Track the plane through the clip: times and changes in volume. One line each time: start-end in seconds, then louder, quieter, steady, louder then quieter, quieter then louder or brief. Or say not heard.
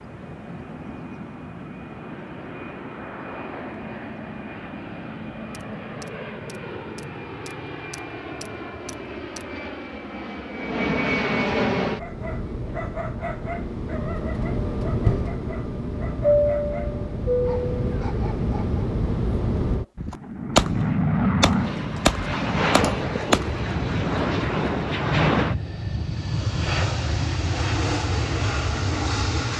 0.0-29.5 louder.